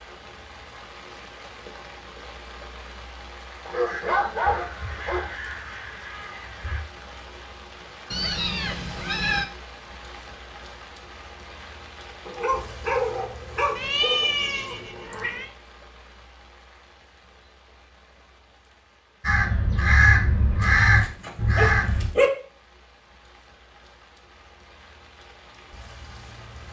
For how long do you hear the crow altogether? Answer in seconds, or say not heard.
6 s.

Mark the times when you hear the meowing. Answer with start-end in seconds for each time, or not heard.
8.1-9.4, 13.8-15.5.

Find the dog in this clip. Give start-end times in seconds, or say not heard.
3.6-5.3, 12.2-14.2, 20.6-22.3.